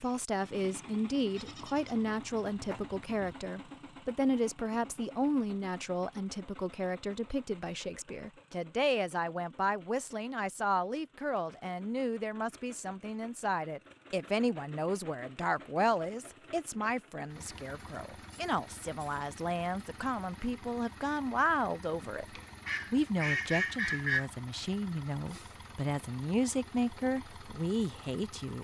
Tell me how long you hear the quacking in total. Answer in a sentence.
The quacking can be heard for 2 seconds in total.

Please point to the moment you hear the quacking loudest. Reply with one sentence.
The loudest moment of the quacking is at 24 seconds.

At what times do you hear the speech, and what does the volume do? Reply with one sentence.
The speech can be heard from 0.0 to 28.5 s, at a steady volume.